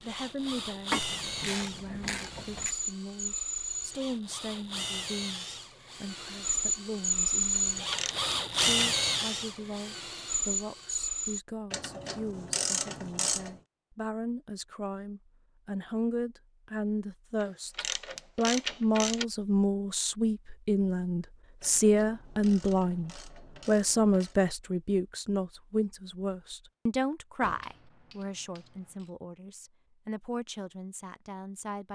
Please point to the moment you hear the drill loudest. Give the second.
9 s.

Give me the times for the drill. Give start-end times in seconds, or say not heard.
0.0-11.4.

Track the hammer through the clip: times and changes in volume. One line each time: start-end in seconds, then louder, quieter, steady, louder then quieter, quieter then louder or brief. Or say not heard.
not heard.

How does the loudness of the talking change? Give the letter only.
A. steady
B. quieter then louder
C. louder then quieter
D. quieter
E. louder
C.